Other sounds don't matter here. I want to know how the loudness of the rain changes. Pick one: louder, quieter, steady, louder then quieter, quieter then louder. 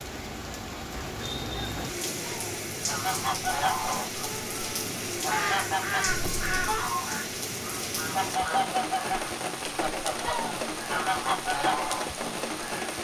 steady.